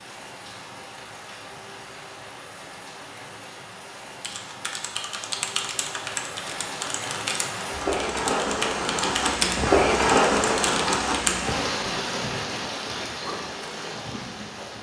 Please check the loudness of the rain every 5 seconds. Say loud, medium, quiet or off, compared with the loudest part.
quiet, loud, loud.